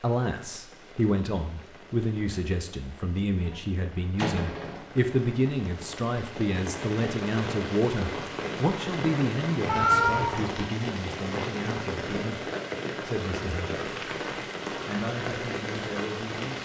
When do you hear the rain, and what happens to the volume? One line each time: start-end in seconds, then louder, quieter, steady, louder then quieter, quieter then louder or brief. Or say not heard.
0.0-16.6 louder.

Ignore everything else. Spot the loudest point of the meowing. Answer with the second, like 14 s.
10 s.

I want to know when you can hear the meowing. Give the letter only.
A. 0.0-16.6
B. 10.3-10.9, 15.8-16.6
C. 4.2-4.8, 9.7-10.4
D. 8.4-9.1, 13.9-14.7
C.